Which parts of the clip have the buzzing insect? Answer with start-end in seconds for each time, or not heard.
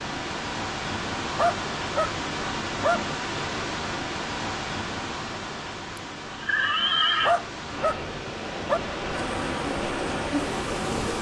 9.1-11.1.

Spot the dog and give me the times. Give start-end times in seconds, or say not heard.
1.4-3.1, 7.2-8.8.